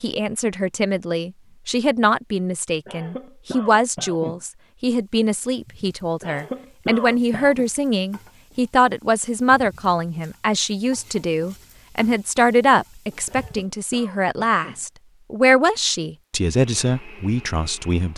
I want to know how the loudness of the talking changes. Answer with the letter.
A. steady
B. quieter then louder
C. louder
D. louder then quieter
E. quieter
A.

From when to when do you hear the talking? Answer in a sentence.
You can hear the talking from 0.0 to 18.1 s.